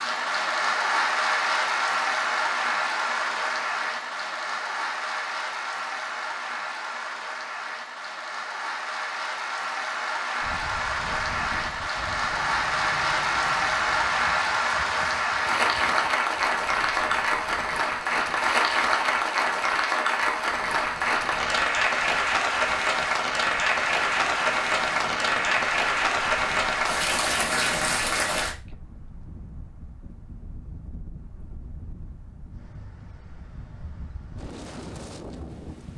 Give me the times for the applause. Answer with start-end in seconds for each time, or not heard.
0.0-28.6.